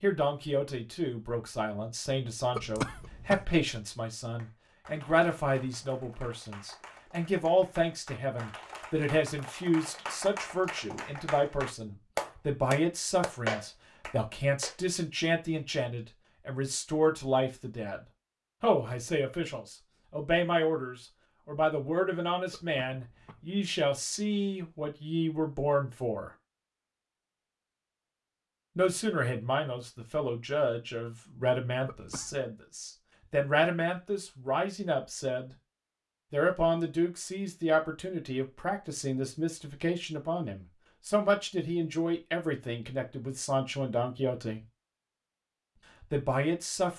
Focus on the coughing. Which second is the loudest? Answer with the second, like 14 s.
3 s.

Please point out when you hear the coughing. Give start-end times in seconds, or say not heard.
2.5-3.5, 22.5-23.4, 31.9-32.4.